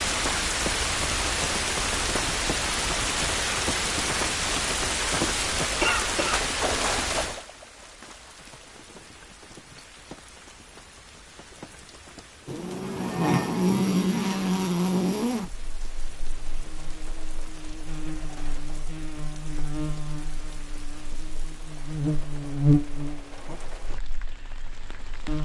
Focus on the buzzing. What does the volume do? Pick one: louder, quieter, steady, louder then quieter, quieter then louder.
quieter then louder.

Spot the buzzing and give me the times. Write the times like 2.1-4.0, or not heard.
12.4-25.3.